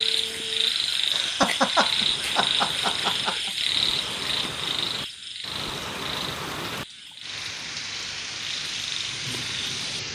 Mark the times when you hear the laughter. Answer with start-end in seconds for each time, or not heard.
1.1-3.5.